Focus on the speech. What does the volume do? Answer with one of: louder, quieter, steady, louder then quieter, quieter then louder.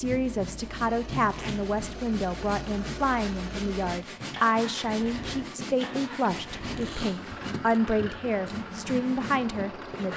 steady.